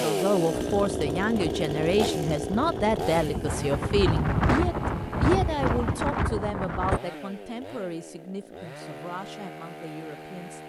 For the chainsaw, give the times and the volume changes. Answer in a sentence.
You can hear the chainsaw from 0.0 to 10.6 s, getting quieter.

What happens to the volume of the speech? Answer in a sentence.
The loudness of the speech goes down.